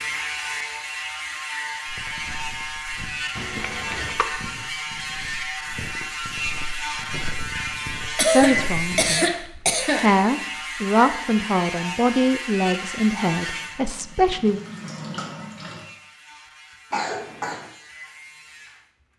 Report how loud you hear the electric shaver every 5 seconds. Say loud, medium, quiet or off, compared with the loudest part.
loud, loud, loud, quiet.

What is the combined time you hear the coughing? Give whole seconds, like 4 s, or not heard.
4 s.